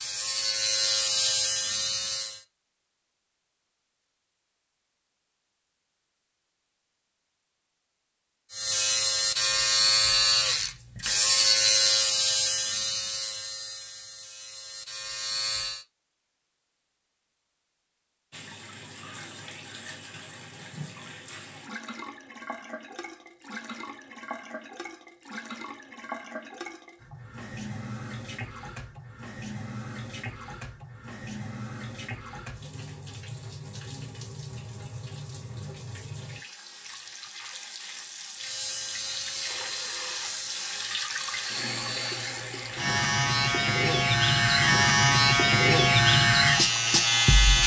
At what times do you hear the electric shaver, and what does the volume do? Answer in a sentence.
The electric shaver can be heard briefly from 0.0 to 2.5 s; from 8.5 to 15.8 s, getting quieter; and from 38.4 to 47.6 s, getting louder.